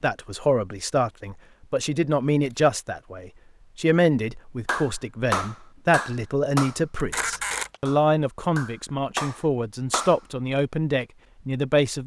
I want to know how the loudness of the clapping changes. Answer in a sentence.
The volume of the clapping goes down, then up.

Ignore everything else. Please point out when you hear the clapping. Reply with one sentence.
The clapping can be heard from 4.7 to 10.2 s.